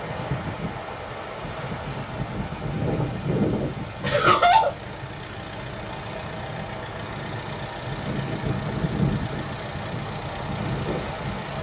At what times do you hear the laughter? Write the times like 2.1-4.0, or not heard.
4.0-4.8.